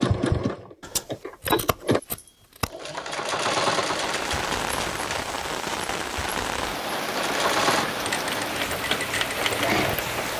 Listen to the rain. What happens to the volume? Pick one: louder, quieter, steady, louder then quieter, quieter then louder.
steady.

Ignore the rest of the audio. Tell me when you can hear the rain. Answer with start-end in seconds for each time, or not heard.
3.9-10.3.